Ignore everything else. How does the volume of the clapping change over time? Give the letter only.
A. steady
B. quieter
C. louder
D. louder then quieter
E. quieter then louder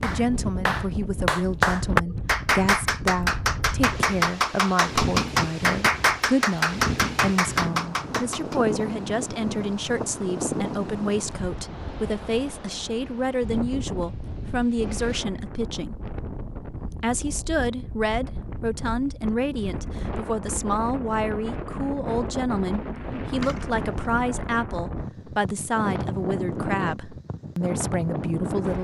A.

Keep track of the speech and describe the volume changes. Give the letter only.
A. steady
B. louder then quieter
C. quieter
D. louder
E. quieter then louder
A.